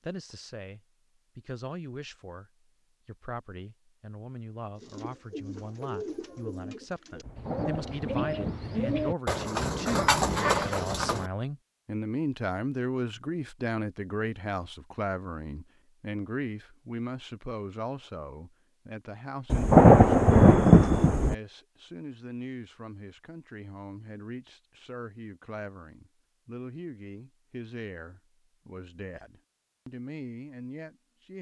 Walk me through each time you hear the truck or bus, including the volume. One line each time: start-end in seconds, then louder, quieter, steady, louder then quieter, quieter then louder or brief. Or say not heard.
not heard.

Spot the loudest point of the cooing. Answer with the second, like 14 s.
10 s.